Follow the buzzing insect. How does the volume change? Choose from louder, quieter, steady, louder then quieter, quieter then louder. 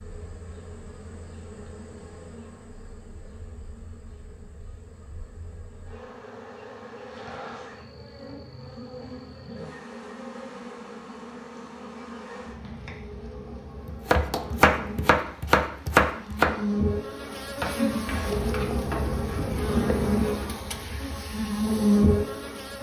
louder.